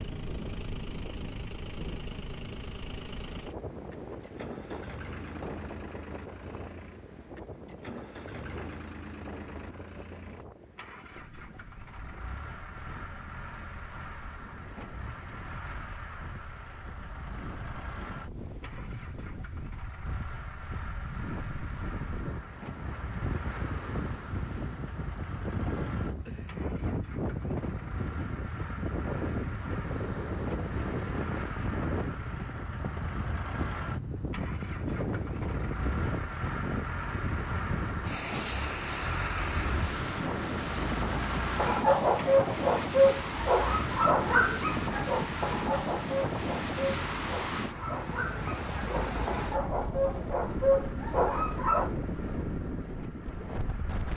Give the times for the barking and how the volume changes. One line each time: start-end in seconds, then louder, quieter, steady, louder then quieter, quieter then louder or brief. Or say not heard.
41.5-51.9 quieter then louder.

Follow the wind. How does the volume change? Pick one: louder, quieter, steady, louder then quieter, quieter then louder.
louder.